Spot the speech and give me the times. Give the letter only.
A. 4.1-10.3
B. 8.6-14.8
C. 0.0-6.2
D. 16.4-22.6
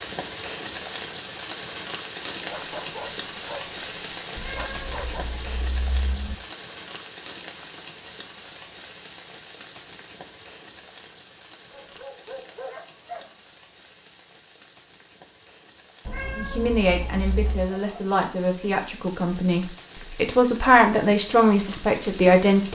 D.